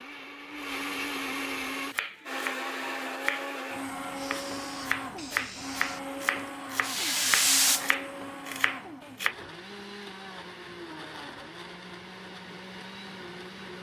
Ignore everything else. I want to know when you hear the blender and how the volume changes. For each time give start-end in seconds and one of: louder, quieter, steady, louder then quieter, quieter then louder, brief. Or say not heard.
0.0-13.7 quieter.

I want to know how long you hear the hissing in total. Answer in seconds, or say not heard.
4 s.